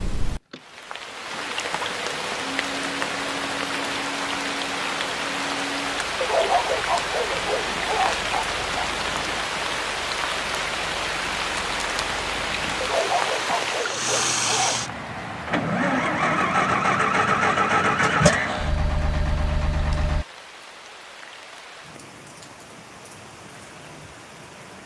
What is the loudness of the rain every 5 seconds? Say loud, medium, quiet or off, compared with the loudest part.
loud, loud, loud, quiet, quiet.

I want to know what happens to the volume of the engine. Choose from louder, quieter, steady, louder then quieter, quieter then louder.
louder.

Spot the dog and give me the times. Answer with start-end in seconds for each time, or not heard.
6.2-8.8, 12.8-14.8.